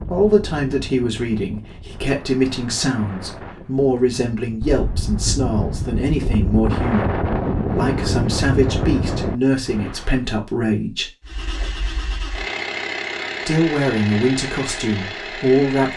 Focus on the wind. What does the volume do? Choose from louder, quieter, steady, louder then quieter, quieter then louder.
louder.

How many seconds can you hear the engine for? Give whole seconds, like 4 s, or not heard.
5 s.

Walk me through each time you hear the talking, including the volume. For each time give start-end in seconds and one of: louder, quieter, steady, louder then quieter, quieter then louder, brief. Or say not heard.
0.1-11.1 steady
13.4-15.9 brief.